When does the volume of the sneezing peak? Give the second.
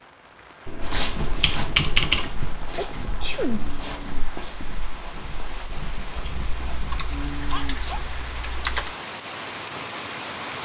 3 s.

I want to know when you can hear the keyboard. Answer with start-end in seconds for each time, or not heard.
0.7-2.3, 6.2-8.9.